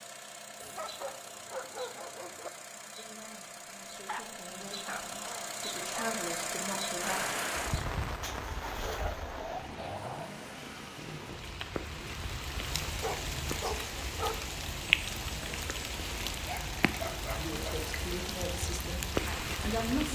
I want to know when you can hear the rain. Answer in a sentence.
The rain can be heard from 7.0 to 20.1 s.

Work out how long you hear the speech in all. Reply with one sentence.
You can hear the speech for 7 seconds altogether.